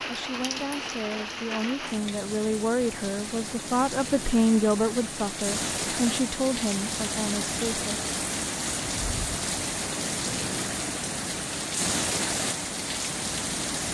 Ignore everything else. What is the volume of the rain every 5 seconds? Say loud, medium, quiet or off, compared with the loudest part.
medium, loud, loud.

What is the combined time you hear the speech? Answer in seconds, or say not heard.
8 s.